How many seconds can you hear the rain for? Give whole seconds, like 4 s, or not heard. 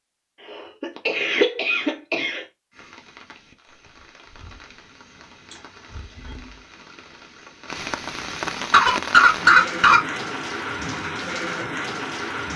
10 s.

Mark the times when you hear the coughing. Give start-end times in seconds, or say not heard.
0.5-2.5, 5.5-6.7, 8.7-10.0.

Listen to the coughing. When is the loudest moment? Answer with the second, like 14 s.
9 s.